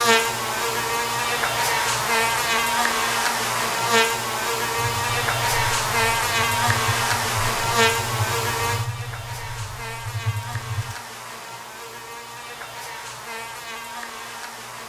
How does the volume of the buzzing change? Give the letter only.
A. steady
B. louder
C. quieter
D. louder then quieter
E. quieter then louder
C.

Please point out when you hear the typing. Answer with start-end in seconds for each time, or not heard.
4.8-10.9.